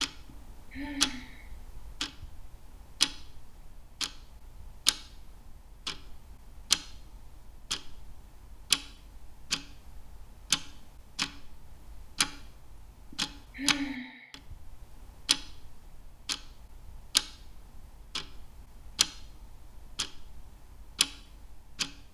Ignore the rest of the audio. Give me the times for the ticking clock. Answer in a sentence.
You can hear the ticking clock from 0.0 to 22.1 s.